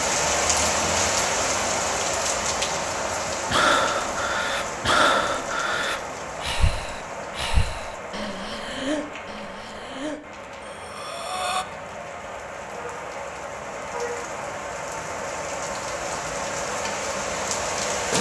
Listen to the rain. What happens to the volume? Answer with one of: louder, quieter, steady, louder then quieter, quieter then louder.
quieter then louder.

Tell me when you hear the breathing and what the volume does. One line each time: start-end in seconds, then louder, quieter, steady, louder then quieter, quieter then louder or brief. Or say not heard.
3.5-11.7 quieter.